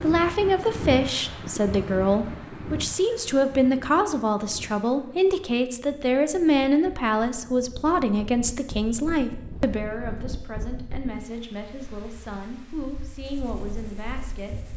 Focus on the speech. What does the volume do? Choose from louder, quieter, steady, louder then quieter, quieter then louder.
quieter.